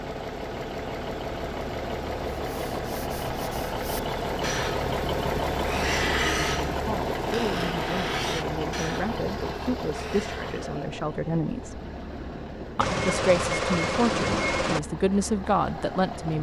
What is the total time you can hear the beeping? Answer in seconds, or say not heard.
2 s.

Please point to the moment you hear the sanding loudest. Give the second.
6 s.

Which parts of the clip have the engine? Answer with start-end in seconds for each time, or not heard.
0.0-16.3.